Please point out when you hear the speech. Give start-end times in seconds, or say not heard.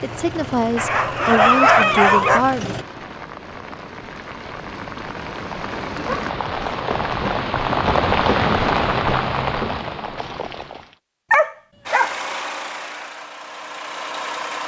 0.0-2.6.